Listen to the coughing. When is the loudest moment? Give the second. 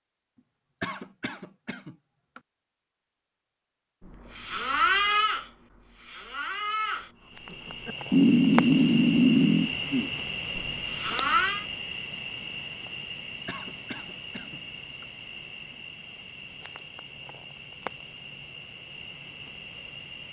1 s.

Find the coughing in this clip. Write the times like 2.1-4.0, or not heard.
0.8-2.4, 13.4-15.1.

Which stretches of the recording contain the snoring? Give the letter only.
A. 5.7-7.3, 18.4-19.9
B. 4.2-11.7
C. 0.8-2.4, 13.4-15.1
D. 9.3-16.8
B.